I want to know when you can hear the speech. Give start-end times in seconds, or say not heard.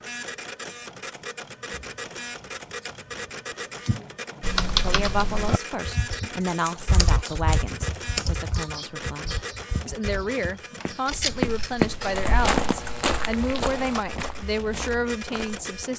4.8-15.9.